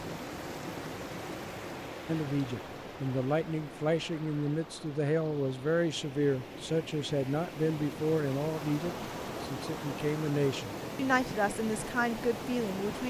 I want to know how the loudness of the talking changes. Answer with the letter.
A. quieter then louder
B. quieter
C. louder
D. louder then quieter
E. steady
E.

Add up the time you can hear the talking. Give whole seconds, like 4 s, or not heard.
11 s.